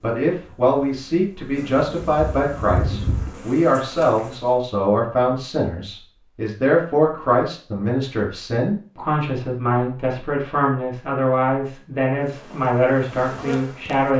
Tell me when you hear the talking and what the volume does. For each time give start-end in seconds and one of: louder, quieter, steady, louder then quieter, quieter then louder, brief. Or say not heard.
0.0-14.1 steady.